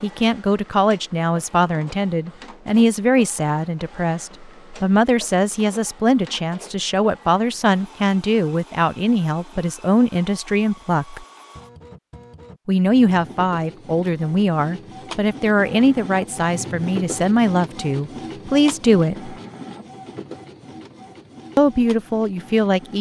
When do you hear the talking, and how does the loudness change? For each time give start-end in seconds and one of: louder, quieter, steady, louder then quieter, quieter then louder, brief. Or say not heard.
0.0-11.2 steady
12.7-19.4 steady
21.6-22.9 brief.